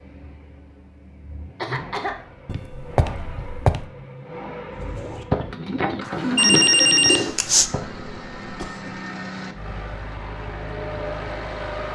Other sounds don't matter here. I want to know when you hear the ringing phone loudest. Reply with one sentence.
The loudest moment of the ringing phone is at 7 seconds.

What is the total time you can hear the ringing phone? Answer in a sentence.
You can hear the ringing phone for 3 seconds altogether.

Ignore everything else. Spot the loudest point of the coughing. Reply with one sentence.
The volume of the coughing peaks at 2 seconds.